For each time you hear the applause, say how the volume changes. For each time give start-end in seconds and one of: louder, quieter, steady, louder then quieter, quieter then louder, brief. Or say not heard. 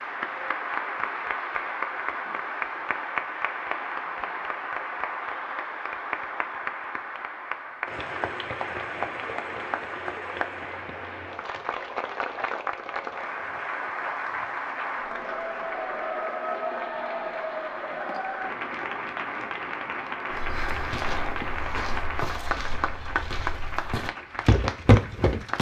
0.0-25.5 steady.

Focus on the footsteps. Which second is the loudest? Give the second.
25 s.